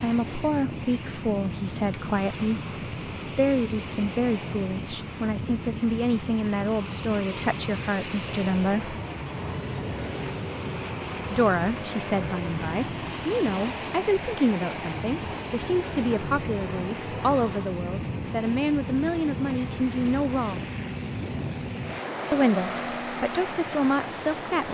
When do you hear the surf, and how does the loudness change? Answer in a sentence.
The surf can be heard from 0.0 to 24.7 s, at a steady volume.